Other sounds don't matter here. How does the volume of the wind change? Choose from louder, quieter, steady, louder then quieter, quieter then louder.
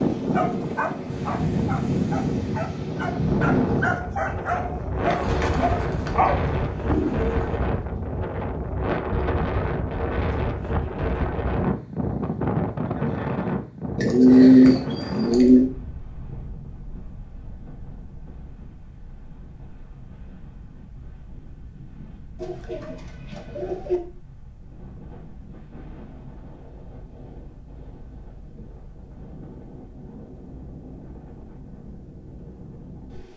quieter.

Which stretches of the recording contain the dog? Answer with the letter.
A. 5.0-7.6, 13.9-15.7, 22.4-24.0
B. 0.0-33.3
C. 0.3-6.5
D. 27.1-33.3
C.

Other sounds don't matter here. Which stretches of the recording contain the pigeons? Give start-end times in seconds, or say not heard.
5.0-7.6, 13.9-15.7, 22.4-24.0.